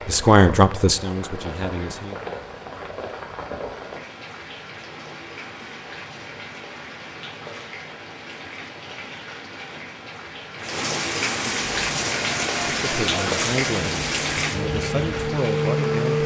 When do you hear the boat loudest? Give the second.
16 s.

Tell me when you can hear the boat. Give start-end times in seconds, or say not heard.
11.8-16.2.